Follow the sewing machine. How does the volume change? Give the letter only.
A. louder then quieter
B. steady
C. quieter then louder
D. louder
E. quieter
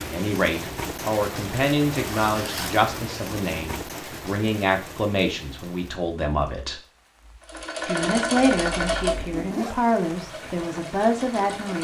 C.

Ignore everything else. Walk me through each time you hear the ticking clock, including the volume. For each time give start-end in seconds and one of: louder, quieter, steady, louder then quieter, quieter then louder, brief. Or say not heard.
not heard.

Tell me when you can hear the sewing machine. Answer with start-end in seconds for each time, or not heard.
7.5-11.7.